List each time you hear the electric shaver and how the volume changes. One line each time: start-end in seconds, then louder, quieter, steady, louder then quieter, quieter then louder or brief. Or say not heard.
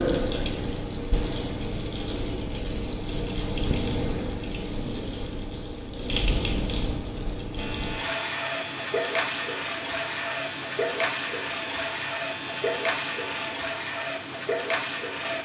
7.5-13.6 steady.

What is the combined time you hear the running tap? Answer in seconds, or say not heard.
15 s.